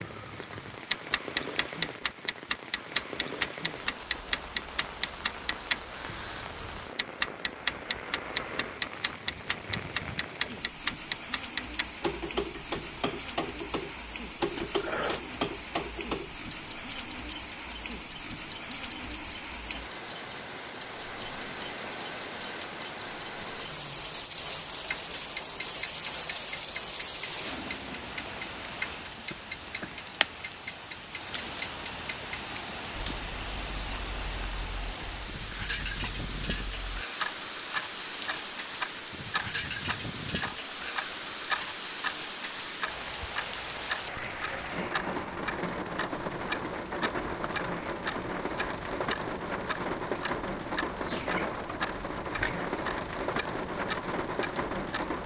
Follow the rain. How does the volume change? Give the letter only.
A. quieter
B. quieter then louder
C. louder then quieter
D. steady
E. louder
E.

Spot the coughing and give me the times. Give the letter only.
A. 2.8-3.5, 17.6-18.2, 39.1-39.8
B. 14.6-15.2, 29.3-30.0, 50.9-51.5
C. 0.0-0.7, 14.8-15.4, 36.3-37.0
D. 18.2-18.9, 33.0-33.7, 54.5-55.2
B.